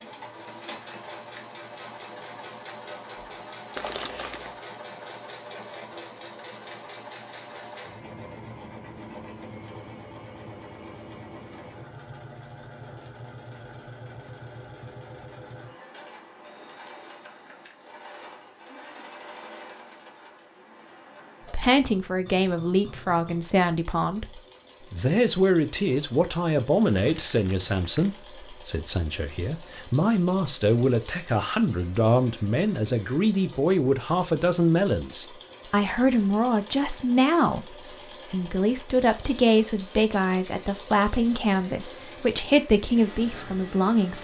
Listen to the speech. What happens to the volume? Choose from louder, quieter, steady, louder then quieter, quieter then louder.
steady.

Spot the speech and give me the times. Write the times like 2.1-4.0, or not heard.
21.5-44.2.